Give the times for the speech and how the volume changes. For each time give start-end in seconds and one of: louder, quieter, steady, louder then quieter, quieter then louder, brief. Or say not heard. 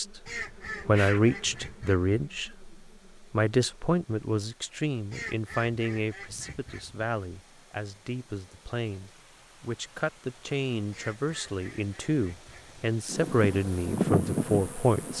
0.0-15.1 quieter then louder.